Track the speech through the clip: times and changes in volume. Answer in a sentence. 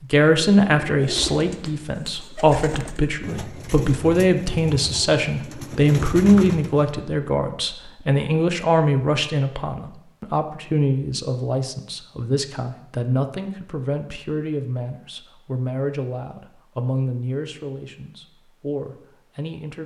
The speech can be heard from 0.0 to 19.8 s, getting quieter.